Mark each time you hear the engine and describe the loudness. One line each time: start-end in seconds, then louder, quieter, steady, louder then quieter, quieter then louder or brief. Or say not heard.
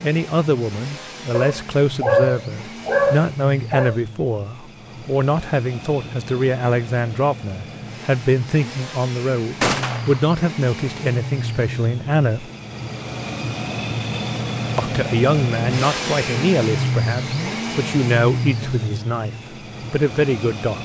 0.0-20.7 louder.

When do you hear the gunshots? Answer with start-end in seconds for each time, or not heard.
9.6-10.2.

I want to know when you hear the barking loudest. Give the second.
2 s.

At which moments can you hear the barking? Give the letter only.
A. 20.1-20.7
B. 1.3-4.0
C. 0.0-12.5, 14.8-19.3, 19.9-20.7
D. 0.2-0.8
B.